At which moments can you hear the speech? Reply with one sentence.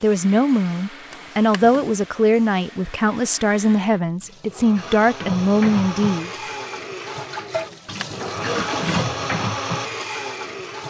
You can hear the speech from 0.0 to 6.3 s.